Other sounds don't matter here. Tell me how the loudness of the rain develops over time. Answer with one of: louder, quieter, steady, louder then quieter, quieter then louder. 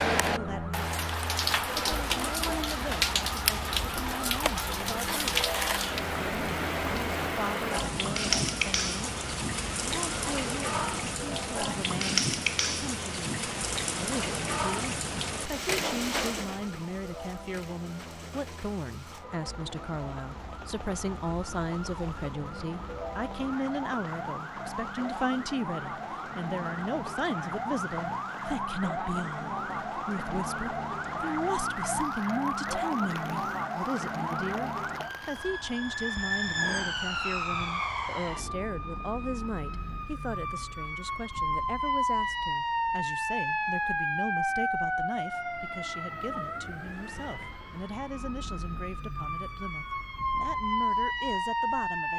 quieter.